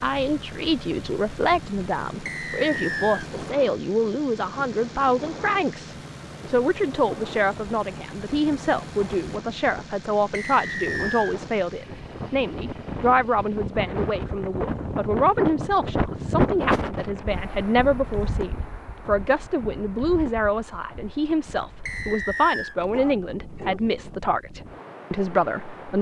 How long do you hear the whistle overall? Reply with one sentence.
The whistle can be heard for 3 seconds in total.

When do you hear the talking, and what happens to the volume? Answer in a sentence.
You can hear the talking from 0.0 to 25.9 s, at a steady volume.